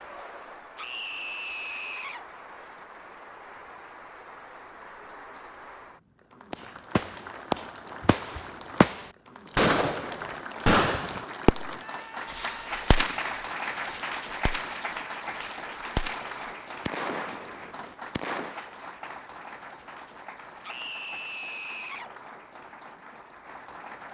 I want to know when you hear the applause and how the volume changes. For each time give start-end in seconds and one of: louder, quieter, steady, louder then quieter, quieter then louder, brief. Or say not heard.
0.0-24.0 louder then quieter.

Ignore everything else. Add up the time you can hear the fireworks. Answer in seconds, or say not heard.
12 s.